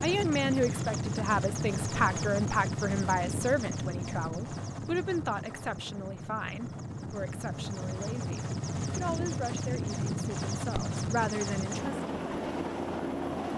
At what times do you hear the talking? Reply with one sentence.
You can hear the talking from 0.0 to 12.0 s.